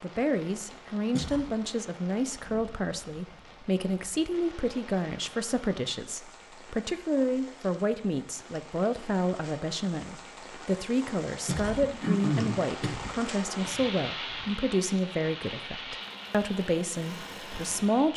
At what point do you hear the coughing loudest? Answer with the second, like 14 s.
12 s.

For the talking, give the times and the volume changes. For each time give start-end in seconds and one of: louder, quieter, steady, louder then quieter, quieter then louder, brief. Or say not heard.
0.0-18.1 steady.